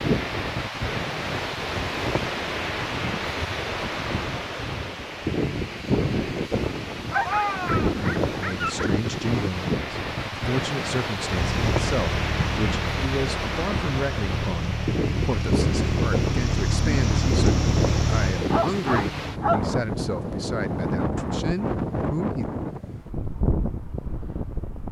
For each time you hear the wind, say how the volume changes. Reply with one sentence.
The wind can be heard from 0.0 to 24.8 s, at a steady volume.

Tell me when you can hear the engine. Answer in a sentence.
You can hear the engine from 11.2 to 18.5 s.